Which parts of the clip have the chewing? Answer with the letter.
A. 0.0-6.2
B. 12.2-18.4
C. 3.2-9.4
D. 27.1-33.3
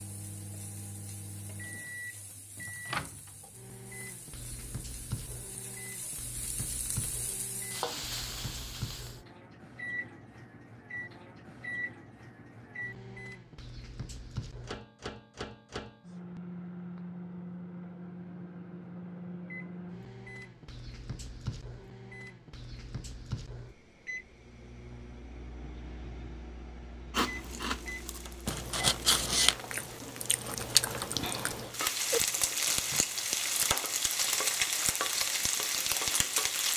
D.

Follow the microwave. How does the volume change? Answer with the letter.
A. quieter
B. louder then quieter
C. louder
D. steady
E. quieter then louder
D.